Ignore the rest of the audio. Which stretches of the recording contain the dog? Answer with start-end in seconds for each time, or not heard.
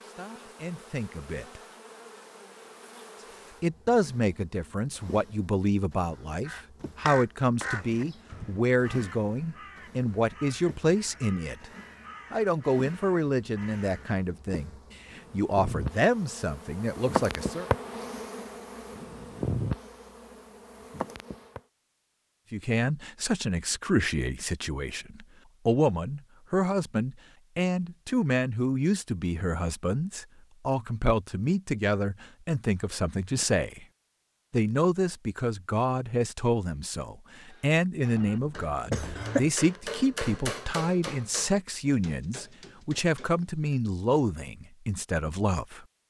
not heard.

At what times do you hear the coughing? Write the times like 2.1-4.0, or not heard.
38.9-39.5.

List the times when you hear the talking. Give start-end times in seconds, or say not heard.
0.0-1.6, 3.6-11.7, 12.3-17.6, 22.5-33.9, 34.5-45.9.